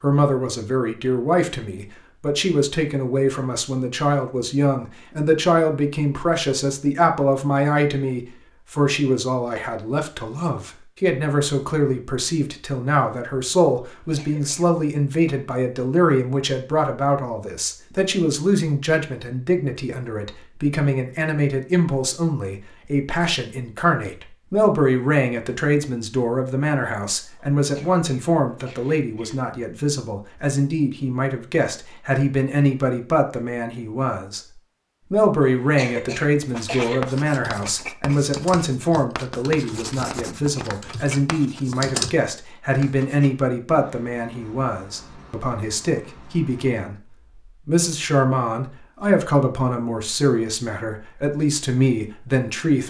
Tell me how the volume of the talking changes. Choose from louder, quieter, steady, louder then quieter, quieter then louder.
steady.